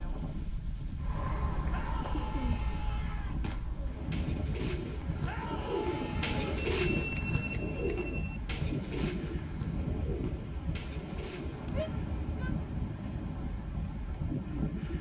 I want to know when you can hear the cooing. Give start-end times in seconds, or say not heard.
1.0-11.8.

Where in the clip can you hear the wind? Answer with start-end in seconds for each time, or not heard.
0.0-14.9.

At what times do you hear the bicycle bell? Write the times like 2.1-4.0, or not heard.
2.5-3.2, 6.7-8.4, 11.7-12.3.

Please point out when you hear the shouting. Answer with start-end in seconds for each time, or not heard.
1.7-3.4, 5.2-6.4, 11.7-12.6.